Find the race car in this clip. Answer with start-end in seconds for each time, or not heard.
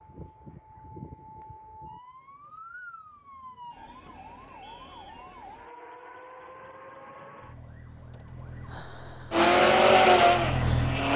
9.3-11.1.